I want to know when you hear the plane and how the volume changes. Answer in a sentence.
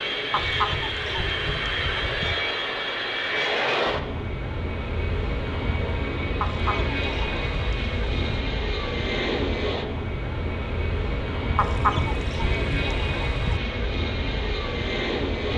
You can hear the plane from 0.0 to 15.5 s, at a steady volume.